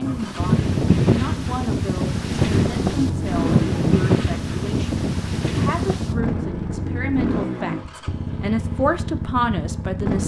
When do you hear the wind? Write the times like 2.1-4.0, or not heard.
0.0-6.5.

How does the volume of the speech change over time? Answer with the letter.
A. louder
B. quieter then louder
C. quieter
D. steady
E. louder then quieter
A.